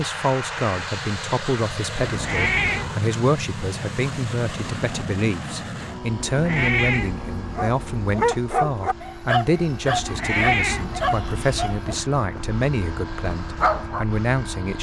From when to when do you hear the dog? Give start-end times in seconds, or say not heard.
7.5-14.1.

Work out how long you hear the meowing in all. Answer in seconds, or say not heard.
5 s.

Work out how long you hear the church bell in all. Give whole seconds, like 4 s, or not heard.
not heard.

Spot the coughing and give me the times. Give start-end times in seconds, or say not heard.
not heard.